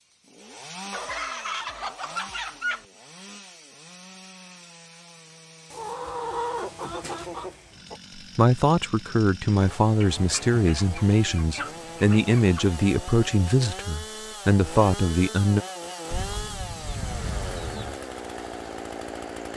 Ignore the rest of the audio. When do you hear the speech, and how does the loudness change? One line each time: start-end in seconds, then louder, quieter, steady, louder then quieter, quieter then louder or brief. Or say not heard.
8.2-15.6 steady.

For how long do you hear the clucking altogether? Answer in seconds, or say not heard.
9 s.